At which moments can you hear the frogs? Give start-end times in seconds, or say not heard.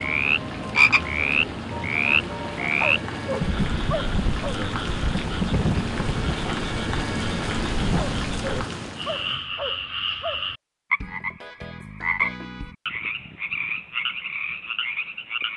0.0-15.5.